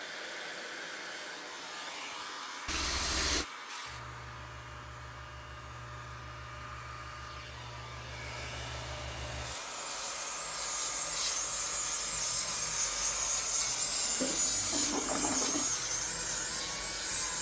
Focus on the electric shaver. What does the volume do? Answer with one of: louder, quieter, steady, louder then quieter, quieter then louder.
louder.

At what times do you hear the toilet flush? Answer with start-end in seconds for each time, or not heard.
2.6-3.5, 14.0-15.7.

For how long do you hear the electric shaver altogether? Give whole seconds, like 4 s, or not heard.
17 s.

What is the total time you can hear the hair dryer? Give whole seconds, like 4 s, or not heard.
17 s.